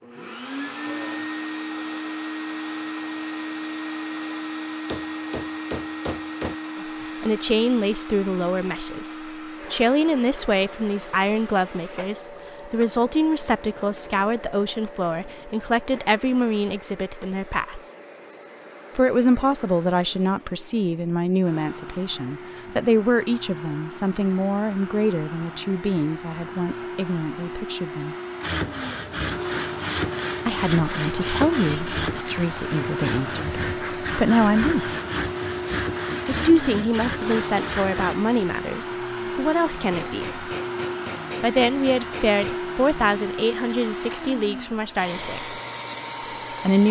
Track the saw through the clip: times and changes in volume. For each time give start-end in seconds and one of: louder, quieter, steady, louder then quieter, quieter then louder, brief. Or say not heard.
28.4-38.1 steady.